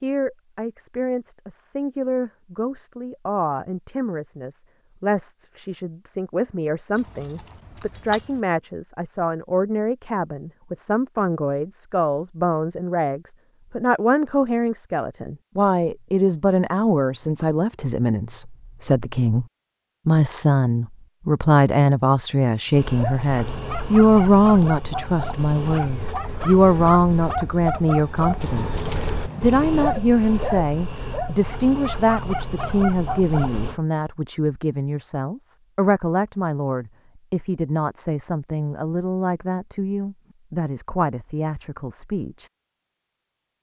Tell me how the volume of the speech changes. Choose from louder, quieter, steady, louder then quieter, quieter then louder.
louder then quieter.